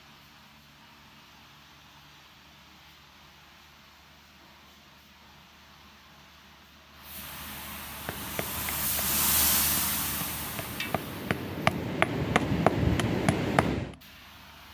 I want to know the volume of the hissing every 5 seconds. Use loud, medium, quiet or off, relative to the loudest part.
quiet, loud, medium.